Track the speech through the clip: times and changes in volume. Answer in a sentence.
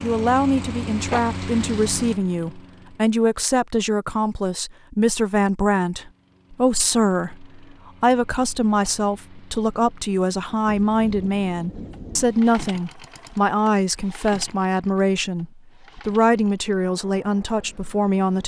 You can hear the speech from 0.0 to 18.4 s, at a steady volume.